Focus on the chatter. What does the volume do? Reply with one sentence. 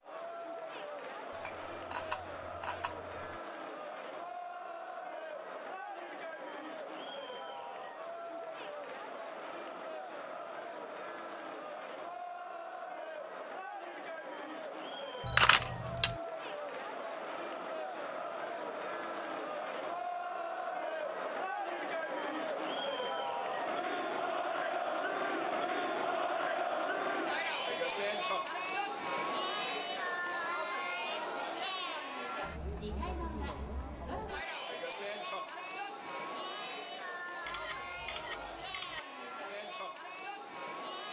The loudness of the chatter goes up, then down.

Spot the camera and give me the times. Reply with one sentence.
The camera can be heard from 1.3 to 3.4 s, from 15.2 to 16.1 s and from 37.5 to 39.0 s.